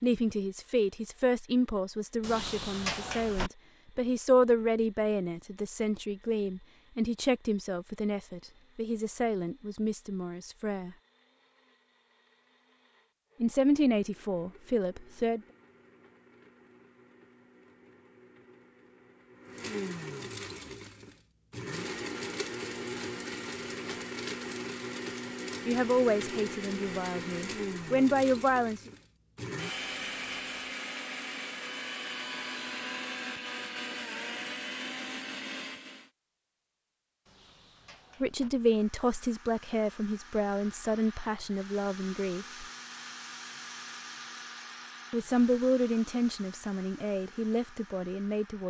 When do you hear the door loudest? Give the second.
3 s.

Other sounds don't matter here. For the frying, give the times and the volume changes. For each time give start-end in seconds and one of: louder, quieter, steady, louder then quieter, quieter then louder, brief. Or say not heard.
not heard.